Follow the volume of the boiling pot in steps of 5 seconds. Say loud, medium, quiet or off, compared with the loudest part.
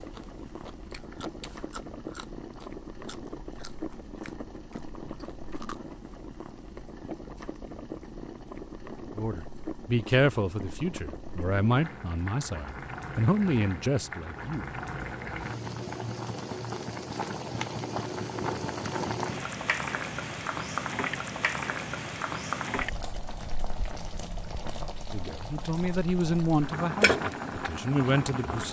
medium, medium, medium, loud, loud, loud.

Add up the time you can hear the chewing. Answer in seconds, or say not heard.
6 s.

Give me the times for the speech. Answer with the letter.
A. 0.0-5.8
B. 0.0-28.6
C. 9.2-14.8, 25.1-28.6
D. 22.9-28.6
C.